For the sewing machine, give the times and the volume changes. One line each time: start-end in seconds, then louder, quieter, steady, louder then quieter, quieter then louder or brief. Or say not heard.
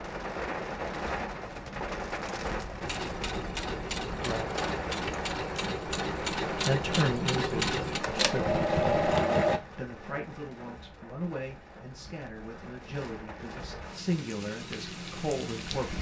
2.8-9.6 louder.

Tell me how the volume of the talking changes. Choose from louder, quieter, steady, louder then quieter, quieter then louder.
quieter then louder.